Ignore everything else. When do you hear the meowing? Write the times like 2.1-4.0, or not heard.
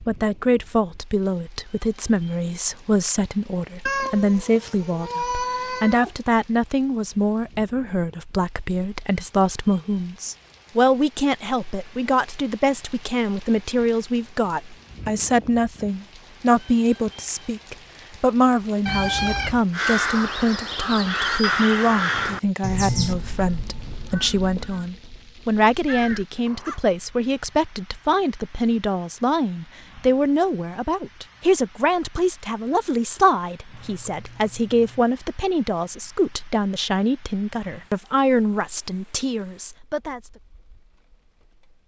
3.9-6.1, 18.9-19.6, 33.7-35.0.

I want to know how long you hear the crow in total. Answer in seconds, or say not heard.
7 s.